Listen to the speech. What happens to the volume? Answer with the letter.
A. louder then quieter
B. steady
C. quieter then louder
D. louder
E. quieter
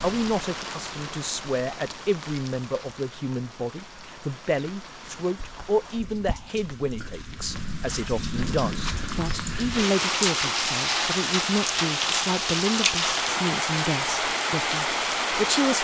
B.